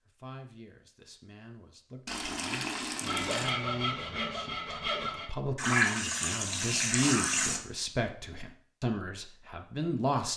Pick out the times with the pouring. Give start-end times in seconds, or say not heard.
2.0-3.5, 5.5-7.6.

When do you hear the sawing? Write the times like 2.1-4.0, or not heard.
3.0-5.3.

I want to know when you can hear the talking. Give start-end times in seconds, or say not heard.
0.1-10.3.